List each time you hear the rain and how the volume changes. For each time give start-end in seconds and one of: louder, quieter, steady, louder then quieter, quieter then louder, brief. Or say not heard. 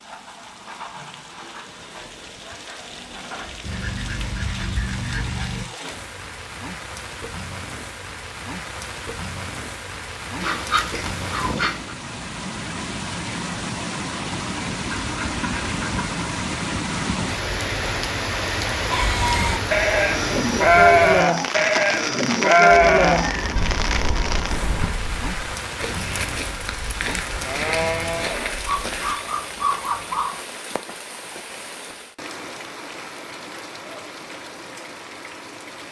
0.0-35.8 louder then quieter.